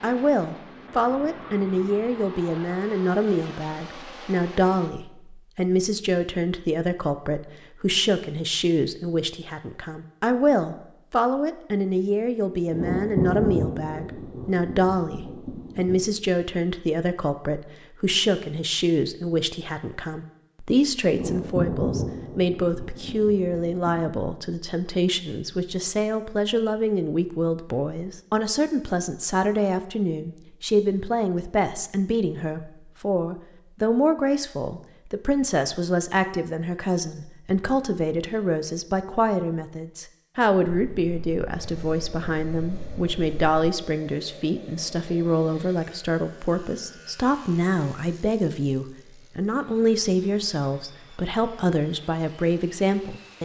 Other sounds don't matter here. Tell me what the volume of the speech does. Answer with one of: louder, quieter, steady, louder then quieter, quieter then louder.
steady.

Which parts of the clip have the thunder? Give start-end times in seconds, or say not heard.
12.7-16.0, 21.1-24.2, 40.6-43.5.